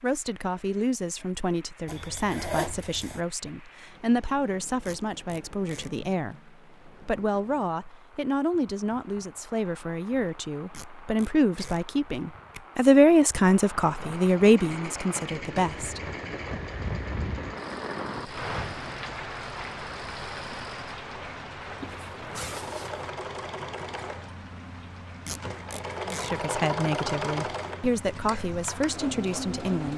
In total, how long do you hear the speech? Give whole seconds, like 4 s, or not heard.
20 s.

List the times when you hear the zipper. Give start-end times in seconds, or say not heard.
1.9-3.2, 21.8-23.1.